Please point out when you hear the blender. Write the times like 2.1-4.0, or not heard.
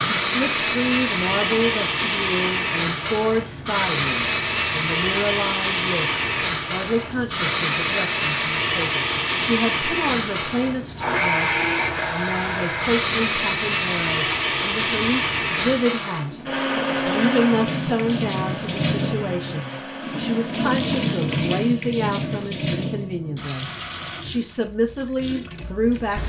0.0-20.6.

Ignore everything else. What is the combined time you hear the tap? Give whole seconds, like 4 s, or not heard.
26 s.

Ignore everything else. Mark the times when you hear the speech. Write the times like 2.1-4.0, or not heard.
0.1-16.4, 17.1-26.2.